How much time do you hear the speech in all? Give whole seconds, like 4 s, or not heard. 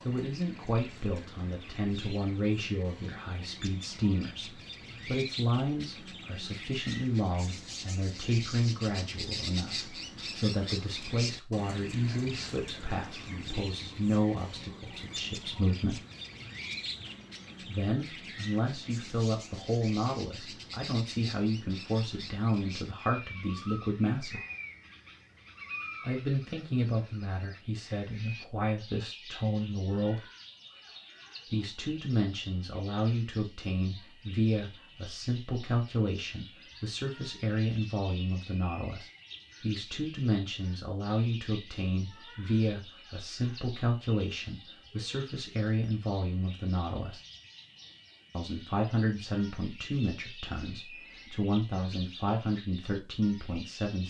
48 s.